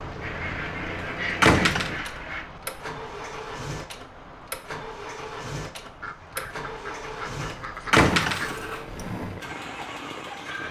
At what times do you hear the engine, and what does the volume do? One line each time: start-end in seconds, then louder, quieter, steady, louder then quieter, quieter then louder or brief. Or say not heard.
0.0-10.6 steady.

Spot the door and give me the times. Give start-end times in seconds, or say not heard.
1.4-2.0, 7.9-8.7.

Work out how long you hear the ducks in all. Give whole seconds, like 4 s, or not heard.
5 s.